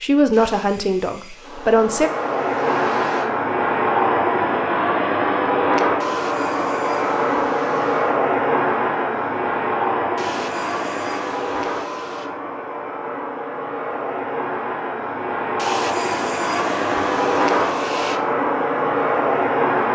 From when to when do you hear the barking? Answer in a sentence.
You can't hear the barking here.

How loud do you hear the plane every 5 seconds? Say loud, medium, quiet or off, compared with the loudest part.
loud, loud, medium, loud.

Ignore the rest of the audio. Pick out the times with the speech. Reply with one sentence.
You can hear the speech from 0.0 to 2.1 s.